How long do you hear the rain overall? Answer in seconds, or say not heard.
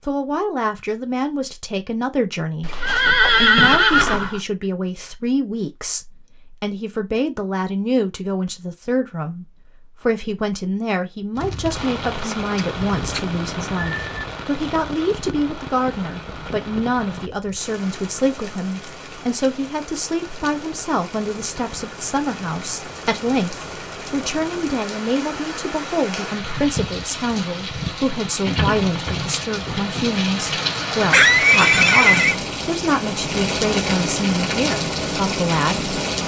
25 s.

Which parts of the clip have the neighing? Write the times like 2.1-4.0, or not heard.
2.6-4.4, 12.3-14.2, 31.1-32.4.